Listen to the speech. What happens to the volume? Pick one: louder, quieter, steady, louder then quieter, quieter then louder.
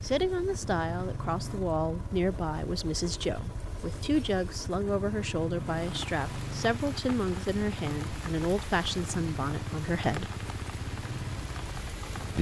steady.